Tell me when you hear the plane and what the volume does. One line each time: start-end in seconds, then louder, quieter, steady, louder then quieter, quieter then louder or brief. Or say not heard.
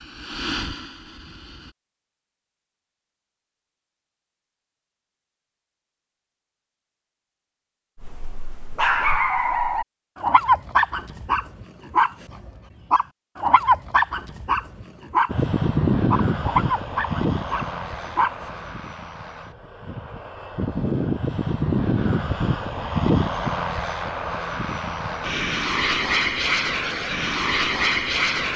0.0-1.8 brief
15.2-28.5 quieter then louder.